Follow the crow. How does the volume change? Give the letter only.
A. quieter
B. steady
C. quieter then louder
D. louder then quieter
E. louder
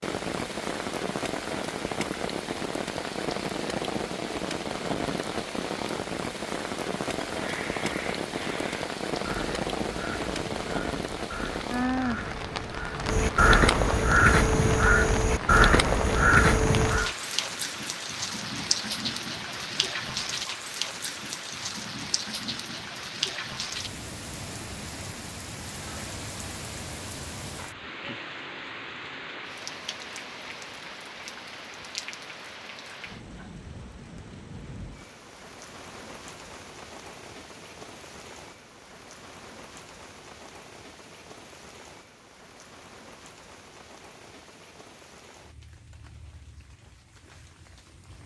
E.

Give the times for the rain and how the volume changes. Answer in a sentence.
The rain can be heard from 0.0 to 48.2 s, getting quieter.